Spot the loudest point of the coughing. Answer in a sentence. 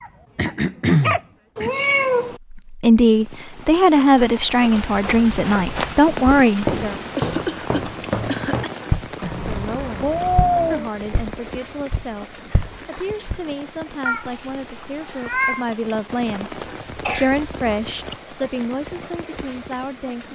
The volume of the coughing peaks at 1 second.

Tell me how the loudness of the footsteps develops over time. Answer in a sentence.
The volume of the footsteps goes up, then down.